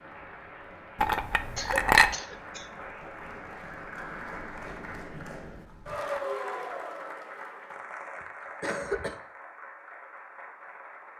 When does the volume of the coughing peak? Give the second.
9 s.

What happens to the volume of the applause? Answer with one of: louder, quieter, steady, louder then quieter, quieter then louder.
louder then quieter.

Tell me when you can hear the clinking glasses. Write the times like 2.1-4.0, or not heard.
1.0-2.1.